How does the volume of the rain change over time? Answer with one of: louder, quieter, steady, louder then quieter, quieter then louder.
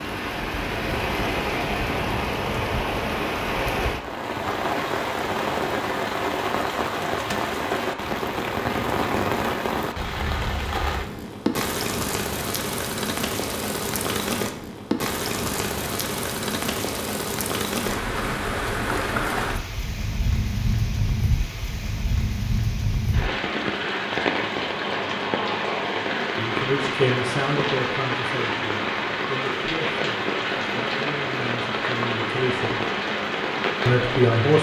steady.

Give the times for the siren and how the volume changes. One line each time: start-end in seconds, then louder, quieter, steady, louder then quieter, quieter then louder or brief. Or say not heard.
not heard.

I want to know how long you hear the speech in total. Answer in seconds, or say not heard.
7 s.